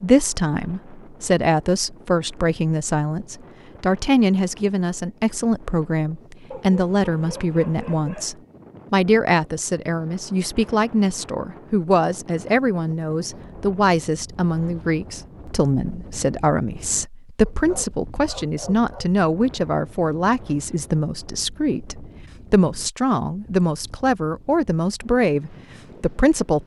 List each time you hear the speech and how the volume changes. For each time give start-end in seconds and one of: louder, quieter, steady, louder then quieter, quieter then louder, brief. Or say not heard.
0.0-26.6 steady.